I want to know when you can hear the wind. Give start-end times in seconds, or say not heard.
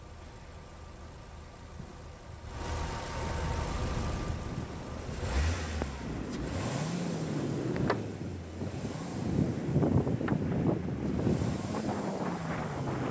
3.6-13.0.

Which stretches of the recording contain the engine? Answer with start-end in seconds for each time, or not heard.
0.0-13.0.